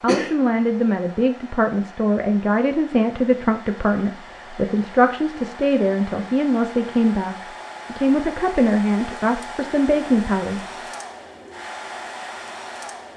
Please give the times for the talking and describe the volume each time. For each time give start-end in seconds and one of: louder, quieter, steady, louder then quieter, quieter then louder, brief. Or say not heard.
0.0-10.6 steady.